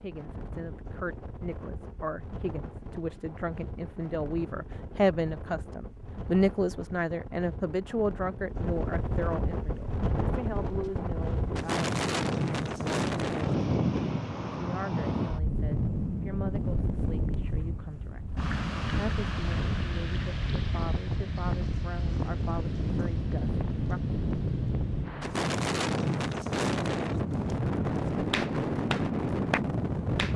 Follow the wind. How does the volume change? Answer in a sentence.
The loudness of the wind goes up.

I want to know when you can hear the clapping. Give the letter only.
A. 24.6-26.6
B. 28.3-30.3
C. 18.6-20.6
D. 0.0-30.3
B.